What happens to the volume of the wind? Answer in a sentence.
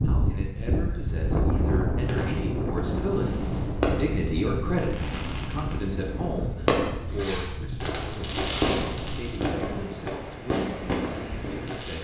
The loudness of the wind goes down.